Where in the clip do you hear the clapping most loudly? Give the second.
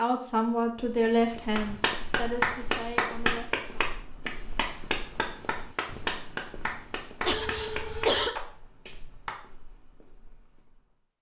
3 s.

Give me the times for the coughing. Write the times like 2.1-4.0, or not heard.
7.2-8.3.